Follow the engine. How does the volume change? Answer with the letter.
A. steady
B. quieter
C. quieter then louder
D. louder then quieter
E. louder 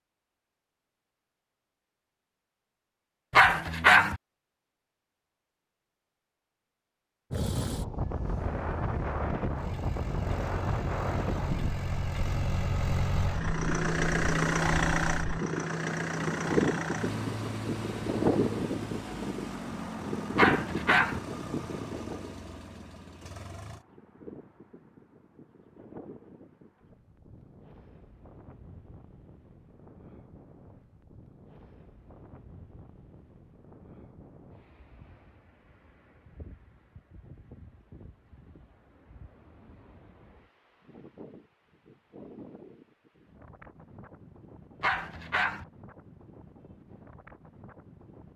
D.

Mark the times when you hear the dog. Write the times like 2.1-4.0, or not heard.
3.3-4.2, 20.4-21.2, 44.8-45.6.